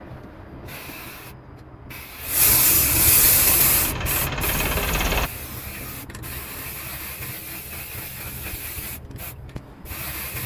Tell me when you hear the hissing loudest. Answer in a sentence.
The loudest moment of the hissing is at 3 seconds.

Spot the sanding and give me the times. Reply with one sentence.
The sanding can't be heard in this clip.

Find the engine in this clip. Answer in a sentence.
You can hear the engine from 3.5 to 5.3 s.